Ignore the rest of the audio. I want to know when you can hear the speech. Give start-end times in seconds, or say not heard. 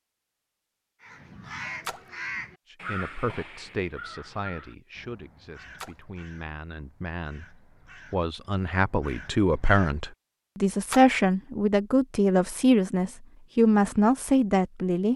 2.7-15.1.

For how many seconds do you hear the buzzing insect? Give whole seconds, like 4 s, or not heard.
not heard.